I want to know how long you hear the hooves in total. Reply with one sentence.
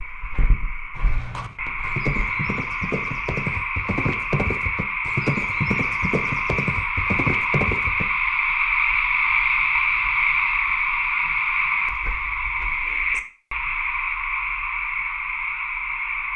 The hooves can be heard for 7 seconds in total.